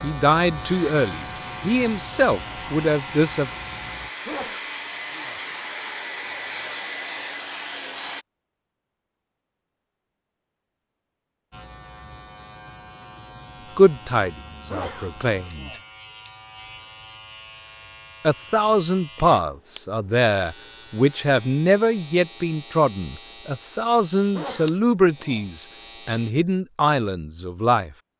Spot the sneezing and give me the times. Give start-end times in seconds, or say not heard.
4.2-5.4, 14.7-15.8, 24.3-25.5.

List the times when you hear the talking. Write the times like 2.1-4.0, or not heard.
0.0-3.5, 13.8-15.7, 18.2-27.9.